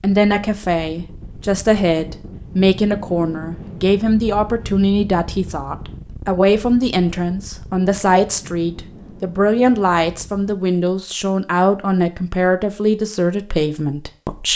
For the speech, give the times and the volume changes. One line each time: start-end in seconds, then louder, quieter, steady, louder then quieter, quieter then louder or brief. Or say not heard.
0.0-14.5 steady.